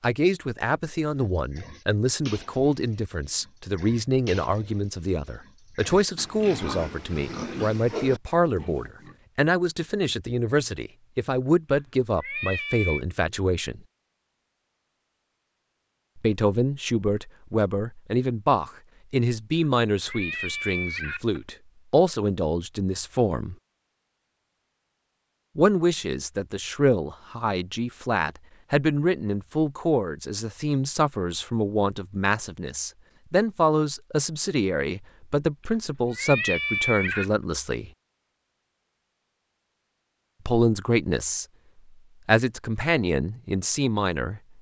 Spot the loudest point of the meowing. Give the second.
37 s.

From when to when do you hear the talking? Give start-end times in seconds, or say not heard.
0.0-13.8, 16.1-23.6, 25.6-37.9, 40.5-41.5, 42.2-44.4.